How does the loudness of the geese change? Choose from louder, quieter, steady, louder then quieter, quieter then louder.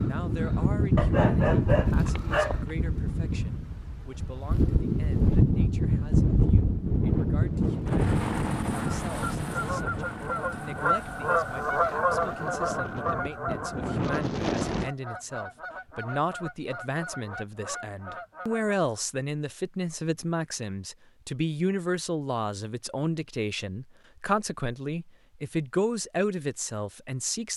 quieter.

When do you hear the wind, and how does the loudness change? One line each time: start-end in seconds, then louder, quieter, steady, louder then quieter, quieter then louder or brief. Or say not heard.
0.0-14.9 quieter.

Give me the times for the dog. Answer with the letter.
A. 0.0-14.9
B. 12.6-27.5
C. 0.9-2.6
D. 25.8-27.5
C.